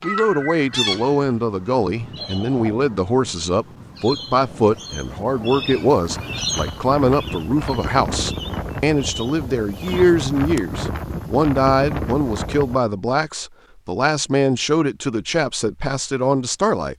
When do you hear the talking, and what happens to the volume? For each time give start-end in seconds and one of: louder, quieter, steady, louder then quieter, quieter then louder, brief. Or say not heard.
0.0-16.9 steady.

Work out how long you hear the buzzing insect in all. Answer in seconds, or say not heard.
not heard.